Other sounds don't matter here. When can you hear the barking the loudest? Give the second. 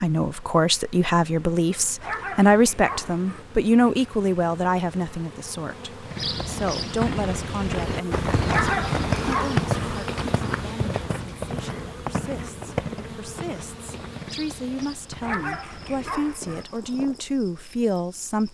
9 s.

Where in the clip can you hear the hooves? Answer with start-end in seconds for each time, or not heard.
6.0-17.2.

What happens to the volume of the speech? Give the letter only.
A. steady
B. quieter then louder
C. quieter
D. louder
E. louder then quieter
B.